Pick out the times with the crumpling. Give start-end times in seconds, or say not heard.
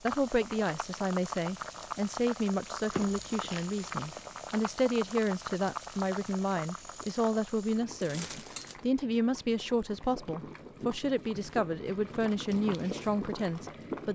2.9-4.2, 8.0-8.8.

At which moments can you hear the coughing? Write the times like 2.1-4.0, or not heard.
not heard.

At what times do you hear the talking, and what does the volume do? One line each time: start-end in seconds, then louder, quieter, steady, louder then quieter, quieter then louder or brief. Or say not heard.
0.0-14.0 steady.